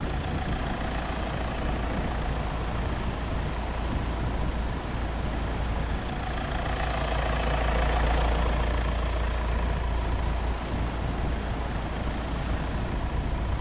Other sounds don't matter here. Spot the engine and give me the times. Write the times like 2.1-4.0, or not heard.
0.0-13.5.